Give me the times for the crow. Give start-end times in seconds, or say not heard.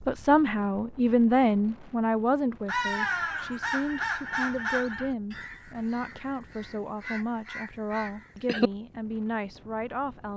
2.6-8.7.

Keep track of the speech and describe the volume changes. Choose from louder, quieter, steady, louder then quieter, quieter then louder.
quieter.